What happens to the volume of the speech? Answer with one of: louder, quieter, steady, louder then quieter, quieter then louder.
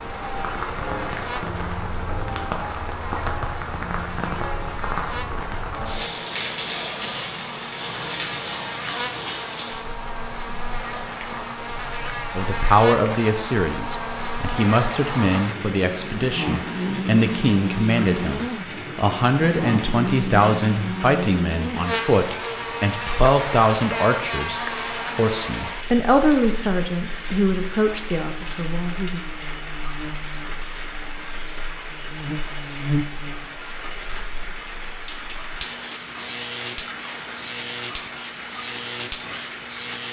steady.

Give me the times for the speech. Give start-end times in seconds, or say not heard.
12.3-29.2.